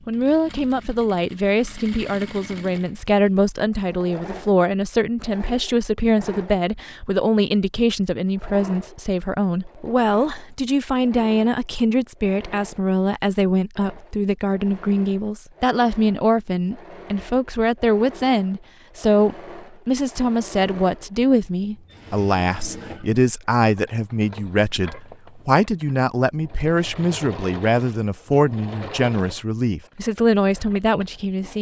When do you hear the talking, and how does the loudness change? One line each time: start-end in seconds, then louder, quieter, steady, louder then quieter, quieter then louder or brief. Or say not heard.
0.1-31.5 steady.